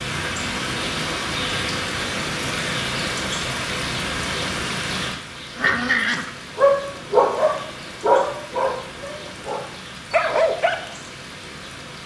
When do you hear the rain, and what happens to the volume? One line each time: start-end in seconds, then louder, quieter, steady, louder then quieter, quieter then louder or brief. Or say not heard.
0.0-12.0 quieter.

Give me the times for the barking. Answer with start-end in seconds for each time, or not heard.
5.5-10.8.